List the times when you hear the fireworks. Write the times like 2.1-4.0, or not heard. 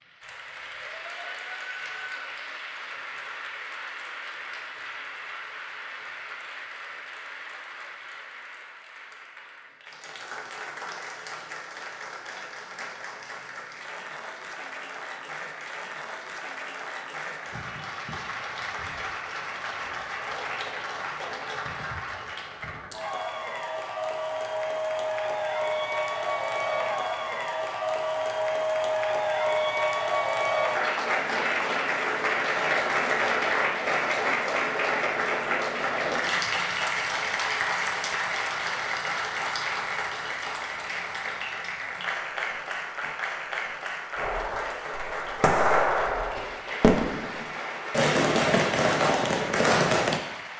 44.1-50.2.